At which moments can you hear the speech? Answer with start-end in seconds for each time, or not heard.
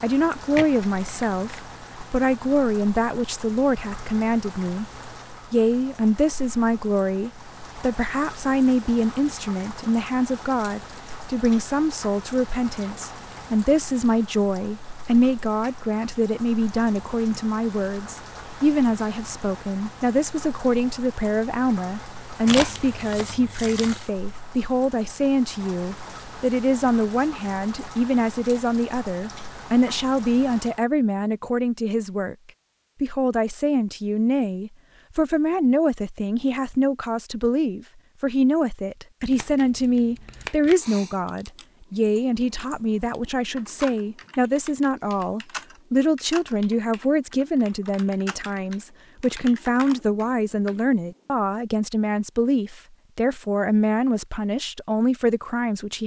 0.0-4.8, 5.5-32.4, 33.0-56.0.